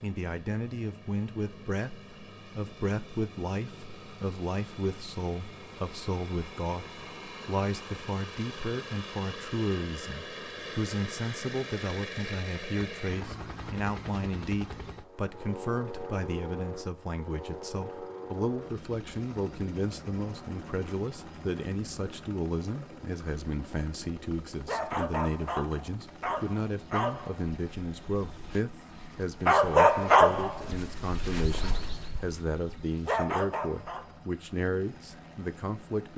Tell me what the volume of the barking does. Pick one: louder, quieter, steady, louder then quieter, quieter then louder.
louder then quieter.